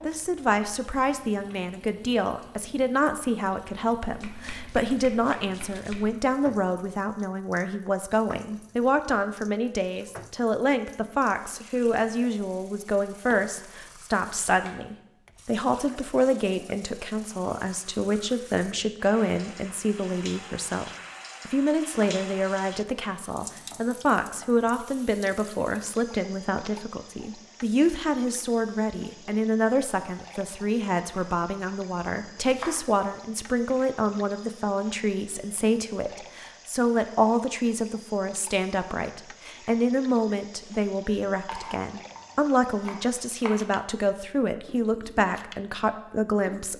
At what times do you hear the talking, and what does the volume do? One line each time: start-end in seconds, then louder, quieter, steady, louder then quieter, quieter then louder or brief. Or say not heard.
0.0-46.7 steady.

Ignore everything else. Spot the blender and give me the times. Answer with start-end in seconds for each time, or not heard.
not heard.